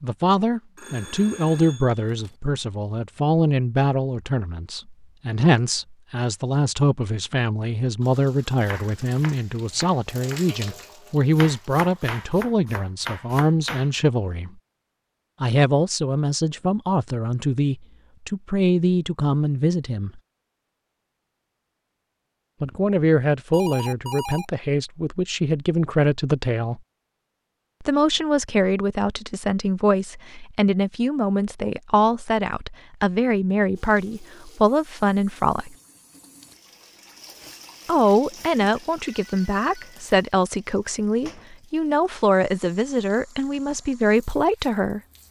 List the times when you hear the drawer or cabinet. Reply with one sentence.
You can't hear the drawer or cabinet here.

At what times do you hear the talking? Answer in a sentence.
The talking can be heard from 0.0 to 14.5 s, from 15.4 to 20.2 s, from 22.6 to 26.8 s, from 27.8 to 35.8 s and from 37.9 to 45.0 s.